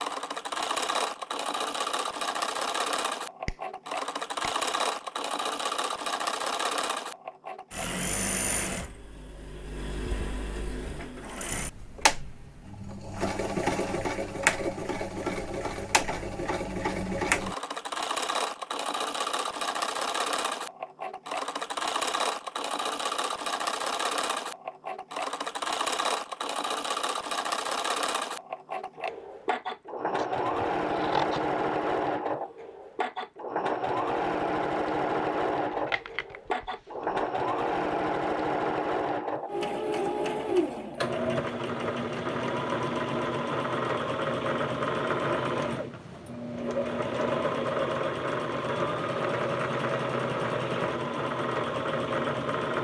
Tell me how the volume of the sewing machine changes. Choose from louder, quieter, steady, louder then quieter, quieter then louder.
steady.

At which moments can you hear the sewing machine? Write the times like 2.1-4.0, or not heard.
0.0-52.8.